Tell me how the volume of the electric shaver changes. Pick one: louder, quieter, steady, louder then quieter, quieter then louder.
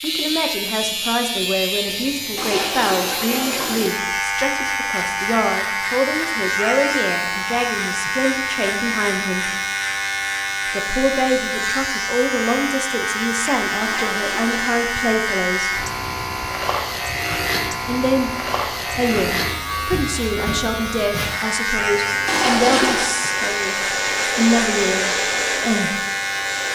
steady.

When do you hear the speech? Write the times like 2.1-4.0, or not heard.
0.0-9.5, 10.7-15.8, 17.9-18.3, 18.9-23.8, 24.4-26.0.